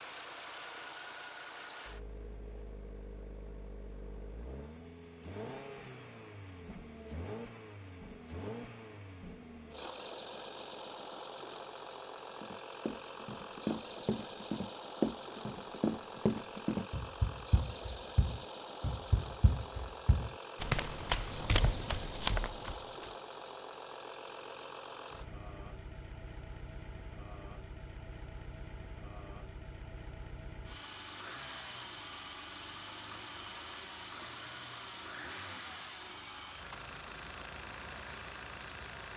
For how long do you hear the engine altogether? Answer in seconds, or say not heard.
39 s.